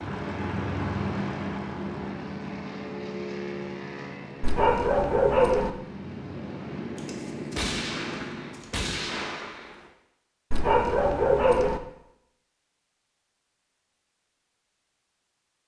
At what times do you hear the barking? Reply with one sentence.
The barking can be heard from 4.4 to 5.7 s and from 10.5 to 11.8 s.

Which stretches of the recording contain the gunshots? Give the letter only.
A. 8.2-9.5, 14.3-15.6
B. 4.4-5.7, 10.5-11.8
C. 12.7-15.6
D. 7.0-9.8
D.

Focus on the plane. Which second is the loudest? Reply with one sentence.
The volume of the plane peaks at 1 second.